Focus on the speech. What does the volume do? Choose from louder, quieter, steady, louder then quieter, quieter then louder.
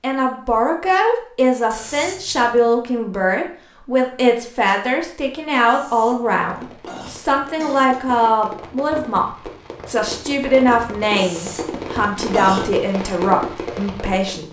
steady.